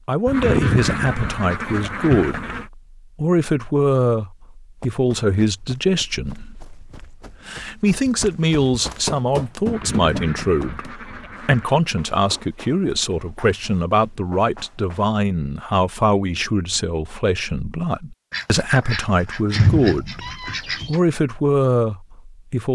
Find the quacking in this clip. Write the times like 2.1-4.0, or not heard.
0.2-2.6, 9.7-11.8, 18.3-21.2.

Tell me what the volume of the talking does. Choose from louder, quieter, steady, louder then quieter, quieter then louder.
steady.